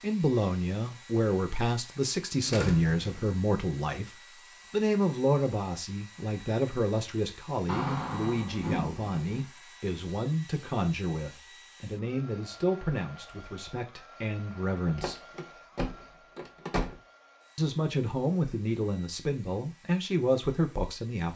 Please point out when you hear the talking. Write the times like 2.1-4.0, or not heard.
0.0-15.2, 17.6-21.3.